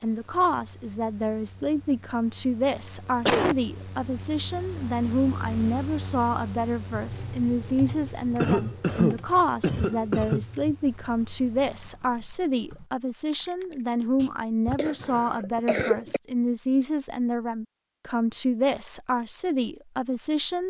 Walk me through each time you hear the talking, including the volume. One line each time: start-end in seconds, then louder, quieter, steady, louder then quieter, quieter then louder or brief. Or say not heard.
0.0-20.6 steady.